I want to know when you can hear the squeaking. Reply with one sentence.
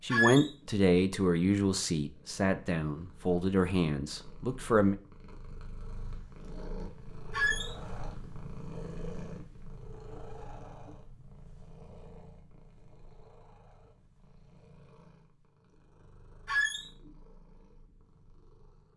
You can hear the squeaking from 0.1 to 0.5 s, from 7.3 to 7.8 s and from 16.4 to 16.9 s.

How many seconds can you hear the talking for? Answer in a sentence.
You can hear the talking for 5 seconds altogether.